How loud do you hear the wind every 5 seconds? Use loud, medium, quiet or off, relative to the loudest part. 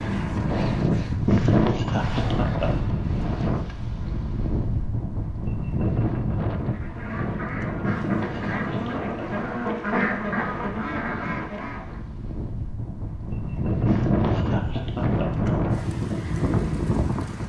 loud, medium, medium, loud.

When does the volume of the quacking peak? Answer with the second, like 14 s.
10 s.